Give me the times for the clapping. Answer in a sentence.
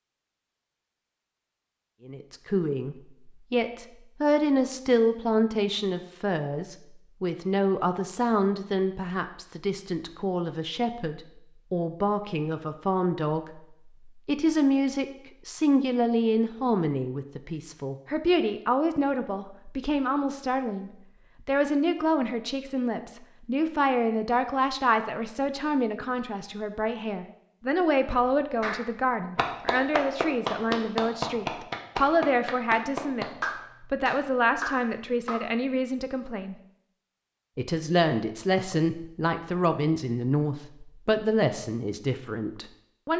You can hear the clapping from 28.6 to 35.5 s.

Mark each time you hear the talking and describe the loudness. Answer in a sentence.
You can hear the talking from 2.0 to 36.5 s, at a steady volume; and from 37.5 to 43.1 s, getting quieter.